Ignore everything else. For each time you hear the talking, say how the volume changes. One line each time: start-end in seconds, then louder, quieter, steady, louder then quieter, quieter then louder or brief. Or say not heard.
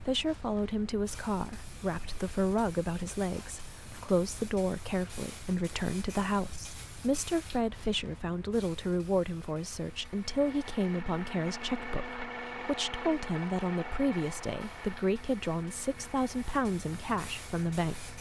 0.0-18.1 steady.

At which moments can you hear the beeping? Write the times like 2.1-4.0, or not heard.
not heard.